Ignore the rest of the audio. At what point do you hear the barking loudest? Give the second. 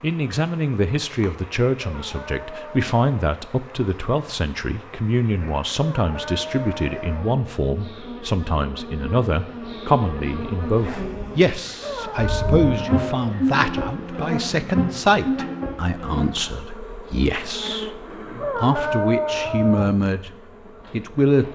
19 s.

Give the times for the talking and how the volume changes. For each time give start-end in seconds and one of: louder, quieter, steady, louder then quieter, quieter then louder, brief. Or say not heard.
0.0-20.3 steady
20.9-21.5 brief.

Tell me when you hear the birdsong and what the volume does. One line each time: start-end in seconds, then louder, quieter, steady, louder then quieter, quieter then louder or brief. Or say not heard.
not heard.